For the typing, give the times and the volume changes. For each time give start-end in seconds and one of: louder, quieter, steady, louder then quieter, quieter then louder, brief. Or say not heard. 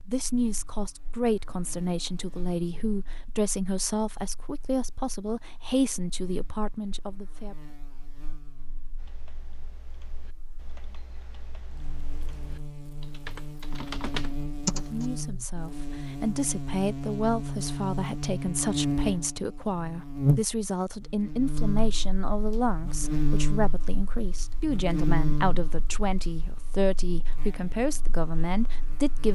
8.9-15.1 louder.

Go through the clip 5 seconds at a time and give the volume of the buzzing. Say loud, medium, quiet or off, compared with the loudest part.
quiet, quiet, medium, loud, loud, medium.